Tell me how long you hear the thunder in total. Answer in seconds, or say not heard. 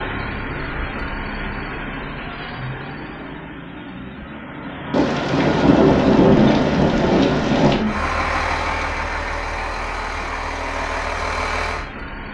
3 s.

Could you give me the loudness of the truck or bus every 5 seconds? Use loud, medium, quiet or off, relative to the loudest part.
medium, loud, loud.